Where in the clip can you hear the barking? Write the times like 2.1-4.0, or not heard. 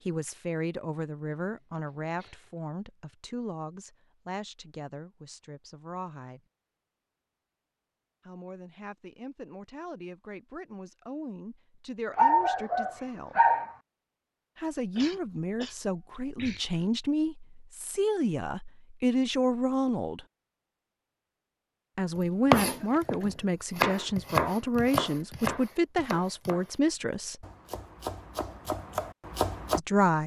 12.2-13.7.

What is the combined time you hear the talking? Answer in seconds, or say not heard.
23 s.